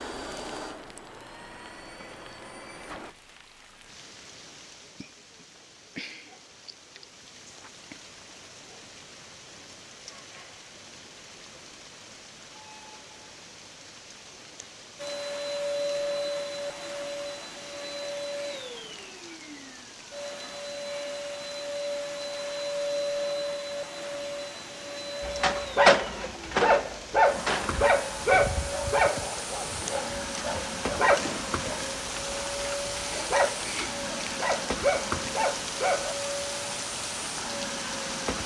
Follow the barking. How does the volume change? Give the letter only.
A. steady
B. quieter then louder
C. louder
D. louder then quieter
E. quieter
E.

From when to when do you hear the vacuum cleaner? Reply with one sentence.
The vacuum cleaner can be heard from 0.0 to 3.1 s and from 14.9 to 38.4 s.